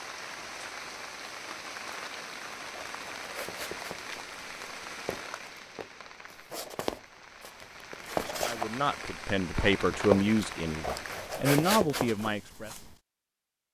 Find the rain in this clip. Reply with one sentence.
You can hear the rain from 0.0 to 11.4 s.